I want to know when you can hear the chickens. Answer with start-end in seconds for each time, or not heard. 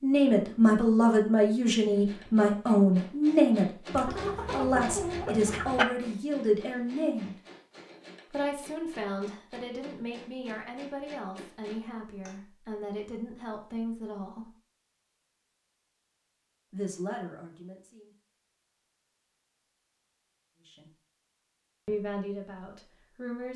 3.9-5.8.